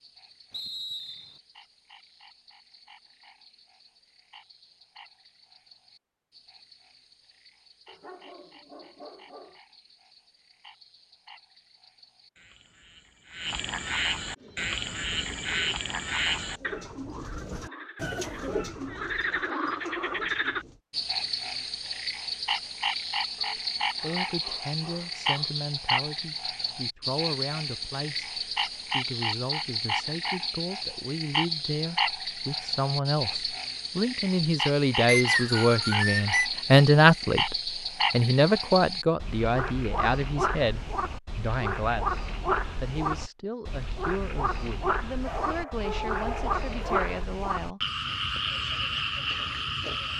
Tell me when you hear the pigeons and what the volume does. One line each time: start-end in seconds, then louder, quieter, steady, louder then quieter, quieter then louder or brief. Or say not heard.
14.3-20.8 louder then quieter.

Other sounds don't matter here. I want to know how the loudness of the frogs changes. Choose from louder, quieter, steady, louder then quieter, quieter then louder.
louder.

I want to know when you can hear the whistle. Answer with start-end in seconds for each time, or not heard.
0.5-1.4, 35.0-36.5.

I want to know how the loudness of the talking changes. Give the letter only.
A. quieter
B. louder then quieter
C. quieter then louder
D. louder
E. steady
B.